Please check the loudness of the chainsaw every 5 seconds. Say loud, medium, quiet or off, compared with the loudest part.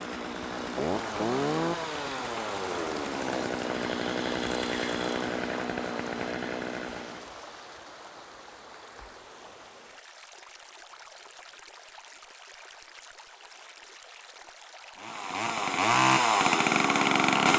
medium, medium, off, loud.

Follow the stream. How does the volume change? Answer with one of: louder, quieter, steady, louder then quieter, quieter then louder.
quieter.